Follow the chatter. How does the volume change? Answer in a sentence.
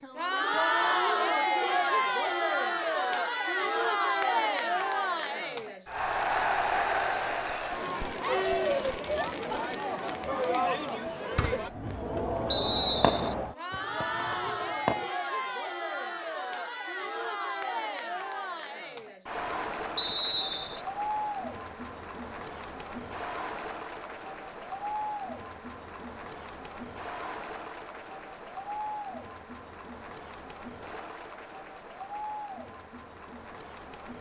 The volume of the chatter goes down.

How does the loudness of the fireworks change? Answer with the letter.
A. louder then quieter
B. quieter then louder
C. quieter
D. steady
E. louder
A.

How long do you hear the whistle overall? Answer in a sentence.
The whistle can be heard for 2 seconds in total.